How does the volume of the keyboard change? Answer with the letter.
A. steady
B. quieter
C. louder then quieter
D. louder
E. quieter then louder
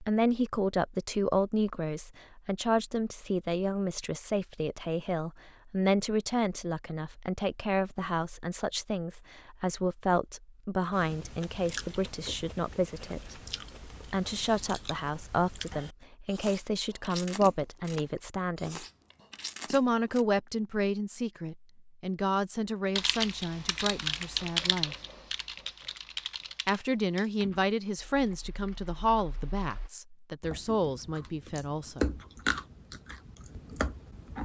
B.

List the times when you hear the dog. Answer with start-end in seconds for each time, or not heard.
not heard.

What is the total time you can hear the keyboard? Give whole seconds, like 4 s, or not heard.
7 s.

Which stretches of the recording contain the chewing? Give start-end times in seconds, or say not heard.
10.9-20.2, 30.4-34.4.